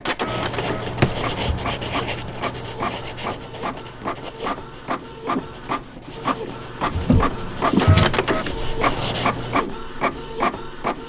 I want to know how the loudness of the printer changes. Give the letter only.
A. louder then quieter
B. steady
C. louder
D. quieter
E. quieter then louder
C.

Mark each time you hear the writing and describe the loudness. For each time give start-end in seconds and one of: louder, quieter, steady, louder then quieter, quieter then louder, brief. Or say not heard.
0.2-9.6 quieter then louder.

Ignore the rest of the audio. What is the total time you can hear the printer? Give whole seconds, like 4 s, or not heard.
11 s.